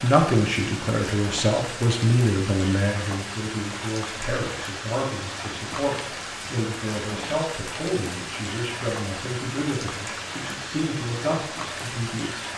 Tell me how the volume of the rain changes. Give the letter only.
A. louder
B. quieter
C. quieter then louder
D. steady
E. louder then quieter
D.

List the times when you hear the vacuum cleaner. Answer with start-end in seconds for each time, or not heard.
not heard.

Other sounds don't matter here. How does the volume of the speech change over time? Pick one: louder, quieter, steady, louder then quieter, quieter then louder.
quieter.